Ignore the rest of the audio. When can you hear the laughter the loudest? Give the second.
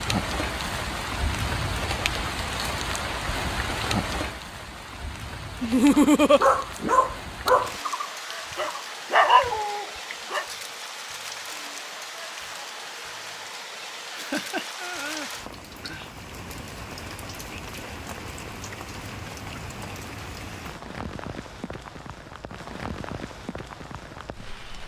6 s.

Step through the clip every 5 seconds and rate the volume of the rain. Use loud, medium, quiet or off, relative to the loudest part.
loud, medium, medium, medium, medium.